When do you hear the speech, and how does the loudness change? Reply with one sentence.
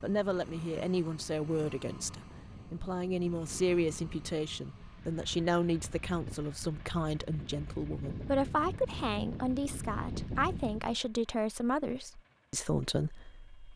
The speech can be heard from 0.0 to 13.7 s, at a steady volume.